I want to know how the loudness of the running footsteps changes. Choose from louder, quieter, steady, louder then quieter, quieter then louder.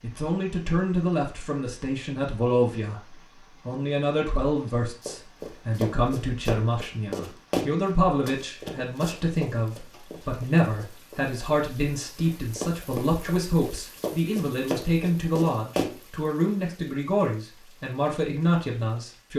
quieter then louder.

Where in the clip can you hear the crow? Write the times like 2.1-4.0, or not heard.
not heard.